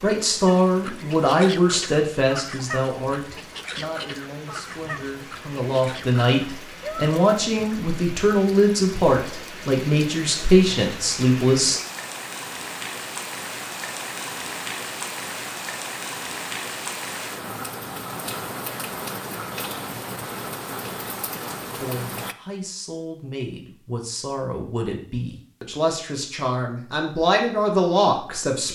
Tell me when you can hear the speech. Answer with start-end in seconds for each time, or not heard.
0.0-11.8, 21.7-28.7.